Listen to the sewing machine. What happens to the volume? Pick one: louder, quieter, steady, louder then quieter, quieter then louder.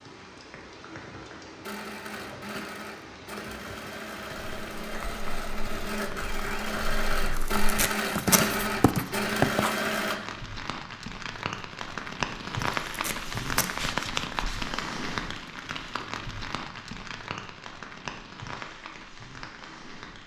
louder.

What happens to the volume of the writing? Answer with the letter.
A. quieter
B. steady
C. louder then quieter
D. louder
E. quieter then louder
D.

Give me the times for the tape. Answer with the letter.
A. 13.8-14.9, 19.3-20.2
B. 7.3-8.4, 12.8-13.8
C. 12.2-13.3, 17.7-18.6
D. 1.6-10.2
B.